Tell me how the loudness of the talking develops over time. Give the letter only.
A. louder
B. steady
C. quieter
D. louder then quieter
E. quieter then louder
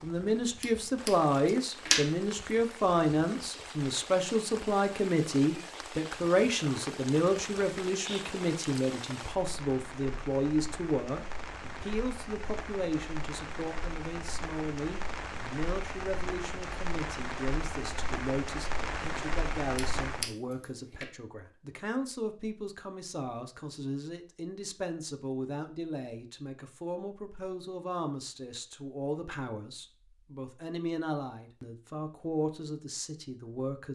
C.